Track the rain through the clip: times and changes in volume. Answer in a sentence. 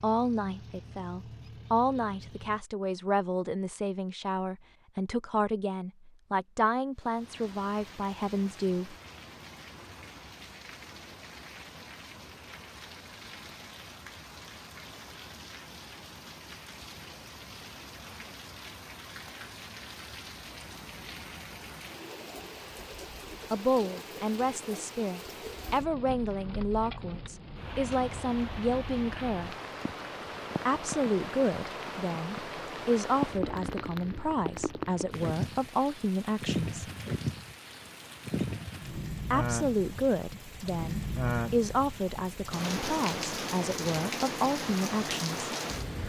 The rain can be heard from 7.0 to 46.0 s, getting louder.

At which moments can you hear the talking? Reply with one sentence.
You can hear the talking from 0.0 to 8.9 s, from 23.5 to 29.6 s, from 30.6 to 36.9 s and from 39.3 to 45.5 s.